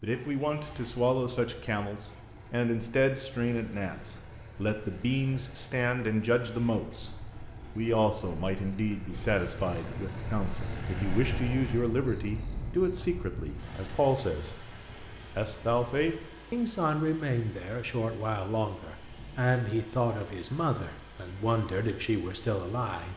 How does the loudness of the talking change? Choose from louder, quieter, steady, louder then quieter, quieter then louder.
steady.